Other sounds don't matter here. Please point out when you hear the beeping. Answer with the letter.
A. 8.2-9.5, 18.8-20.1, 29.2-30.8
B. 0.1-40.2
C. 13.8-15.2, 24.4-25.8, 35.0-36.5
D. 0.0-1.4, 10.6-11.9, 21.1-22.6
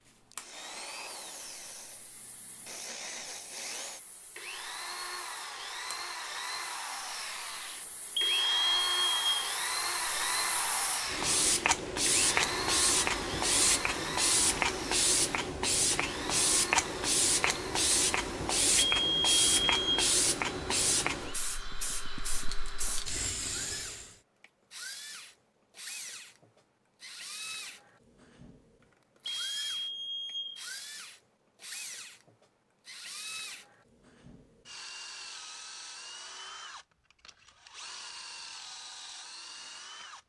A.